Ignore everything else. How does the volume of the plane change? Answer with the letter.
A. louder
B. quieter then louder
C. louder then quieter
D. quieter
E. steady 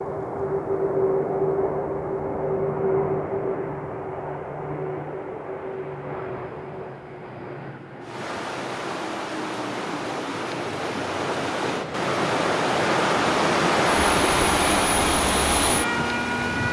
B.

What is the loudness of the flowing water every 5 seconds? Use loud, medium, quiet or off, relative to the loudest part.
off, medium, loud, loud.